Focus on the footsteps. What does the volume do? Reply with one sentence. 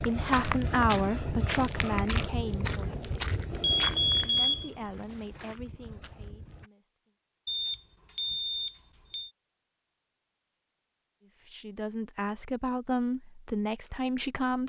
The volume of the footsteps goes down.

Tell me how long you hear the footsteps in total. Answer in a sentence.
The footsteps can be heard for 7 seconds in total.